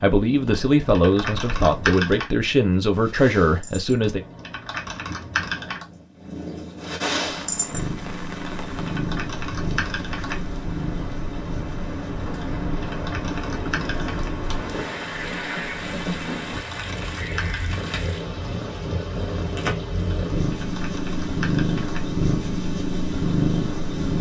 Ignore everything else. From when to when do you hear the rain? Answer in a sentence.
You can hear the rain from 7.2 to 24.1 s.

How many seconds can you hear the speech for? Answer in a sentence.
You can hear the speech for 4 seconds altogether.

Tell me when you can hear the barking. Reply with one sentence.
You can't hear the barking here.